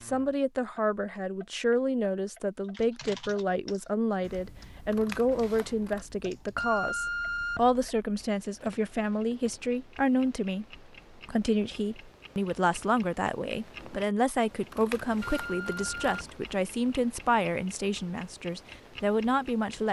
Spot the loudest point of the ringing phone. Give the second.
7 s.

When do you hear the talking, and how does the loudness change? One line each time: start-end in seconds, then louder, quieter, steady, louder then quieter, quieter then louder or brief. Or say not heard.
0.0-19.8 steady.